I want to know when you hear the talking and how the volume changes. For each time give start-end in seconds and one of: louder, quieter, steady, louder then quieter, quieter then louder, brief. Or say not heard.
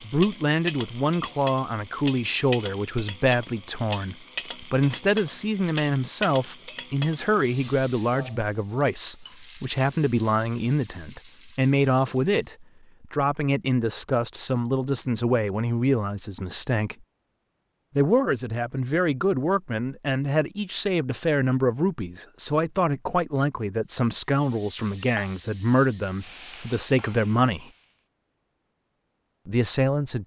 0.0-16.9 steady
17.9-27.7 steady
29.4-30.2 brief.